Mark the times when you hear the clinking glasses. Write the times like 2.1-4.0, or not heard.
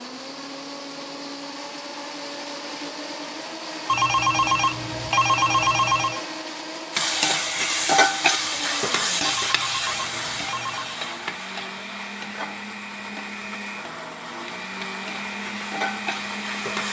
not heard.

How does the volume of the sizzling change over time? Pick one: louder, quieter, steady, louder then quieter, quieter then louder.
quieter then louder.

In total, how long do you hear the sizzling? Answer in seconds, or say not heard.
10 s.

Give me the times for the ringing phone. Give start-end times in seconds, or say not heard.
3.9-6.2, 9.2-11.0.